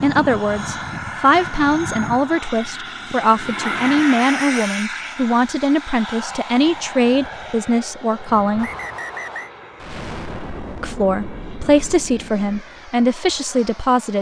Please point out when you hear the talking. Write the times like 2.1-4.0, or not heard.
0.0-8.7, 10.8-14.1.